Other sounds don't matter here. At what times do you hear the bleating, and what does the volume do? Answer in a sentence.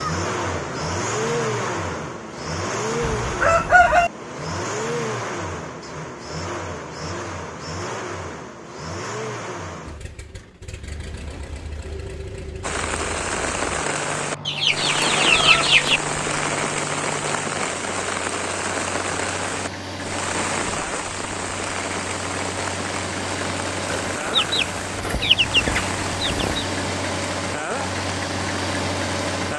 The bleating can't be heard in this clip.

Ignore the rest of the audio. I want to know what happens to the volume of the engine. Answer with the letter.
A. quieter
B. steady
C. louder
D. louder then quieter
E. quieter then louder
E.